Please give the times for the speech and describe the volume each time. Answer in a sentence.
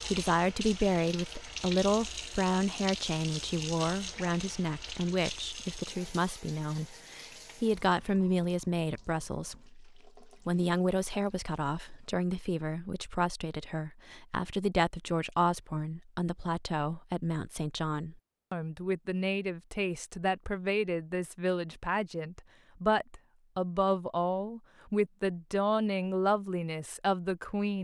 The speech can be heard from 0.1 to 27.7 s, at a steady volume.